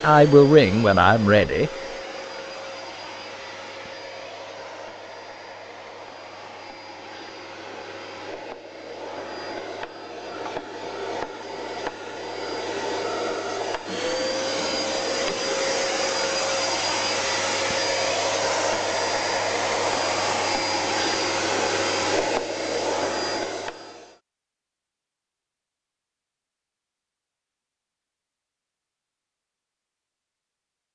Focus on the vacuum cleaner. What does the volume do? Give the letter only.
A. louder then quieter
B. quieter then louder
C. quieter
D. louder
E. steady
D.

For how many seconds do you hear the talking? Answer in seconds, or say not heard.
2 s.